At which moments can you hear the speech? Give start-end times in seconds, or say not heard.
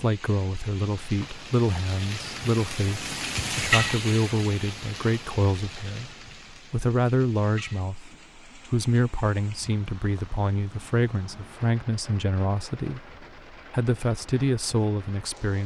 0.0-15.6.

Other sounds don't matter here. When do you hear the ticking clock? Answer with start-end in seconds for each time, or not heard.
not heard.